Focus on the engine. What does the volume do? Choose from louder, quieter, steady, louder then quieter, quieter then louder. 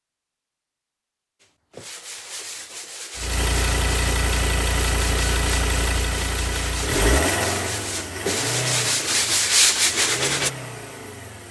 quieter.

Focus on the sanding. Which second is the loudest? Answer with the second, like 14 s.
10 s.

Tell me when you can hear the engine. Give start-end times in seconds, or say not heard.
3.1-11.4.